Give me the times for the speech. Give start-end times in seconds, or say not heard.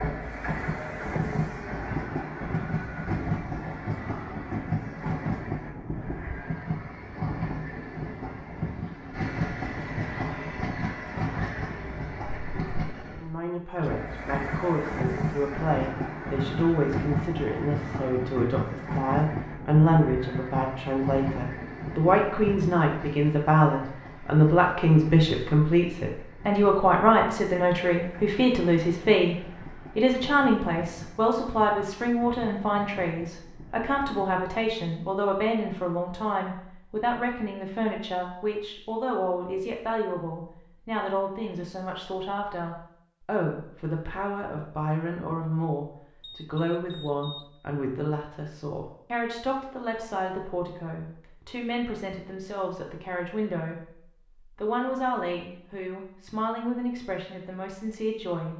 13.2-58.5.